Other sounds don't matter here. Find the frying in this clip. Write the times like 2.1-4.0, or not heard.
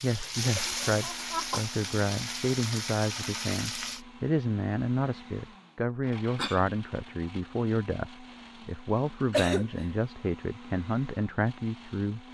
0.0-4.0.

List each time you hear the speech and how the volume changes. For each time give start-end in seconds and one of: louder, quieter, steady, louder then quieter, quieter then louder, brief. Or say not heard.
0.0-12.2 steady.